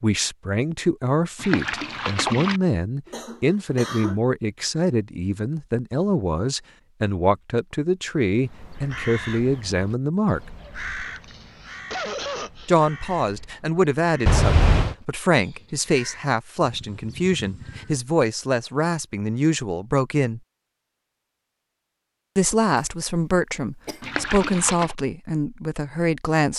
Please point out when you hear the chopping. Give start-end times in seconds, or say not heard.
not heard.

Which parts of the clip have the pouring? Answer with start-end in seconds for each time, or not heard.
1.4-2.6, 14.2-14.9, 24.0-24.9.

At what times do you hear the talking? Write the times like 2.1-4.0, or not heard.
0.0-10.4, 12.7-20.4, 22.4-26.5.